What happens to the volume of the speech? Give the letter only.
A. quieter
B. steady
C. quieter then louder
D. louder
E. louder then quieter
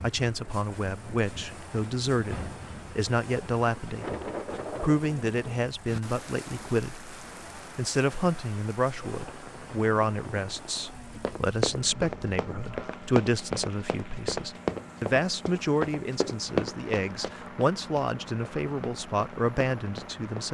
B.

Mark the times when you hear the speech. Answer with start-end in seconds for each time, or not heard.
0.0-20.4.